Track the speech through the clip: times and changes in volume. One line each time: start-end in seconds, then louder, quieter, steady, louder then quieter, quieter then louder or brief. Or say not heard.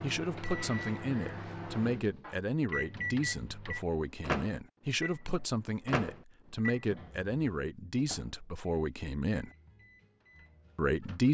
0.0-9.5 steady
10.8-11.2 brief.